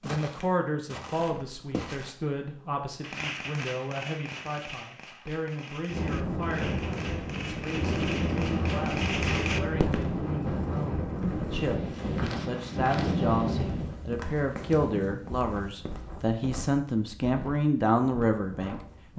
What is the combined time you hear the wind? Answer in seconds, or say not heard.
13 s.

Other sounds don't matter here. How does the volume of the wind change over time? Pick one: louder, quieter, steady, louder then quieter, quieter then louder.
quieter.